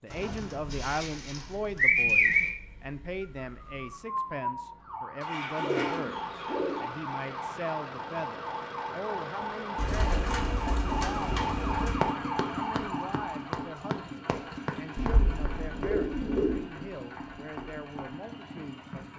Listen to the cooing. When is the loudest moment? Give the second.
2 s.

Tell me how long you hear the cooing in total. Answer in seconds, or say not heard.
8 s.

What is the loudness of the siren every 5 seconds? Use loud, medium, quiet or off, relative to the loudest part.
loud, loud, loud, off.